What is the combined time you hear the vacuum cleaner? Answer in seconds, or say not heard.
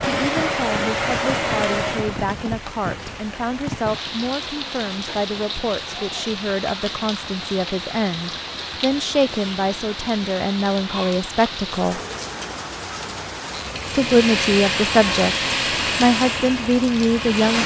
6 s.